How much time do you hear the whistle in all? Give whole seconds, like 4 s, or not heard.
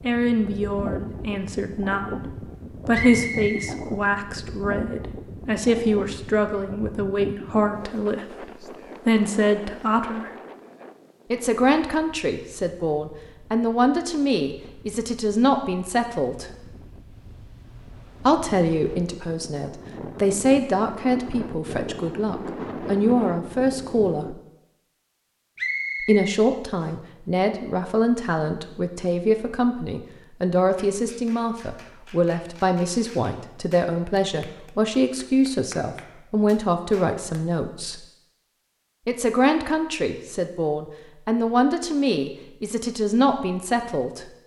2 s.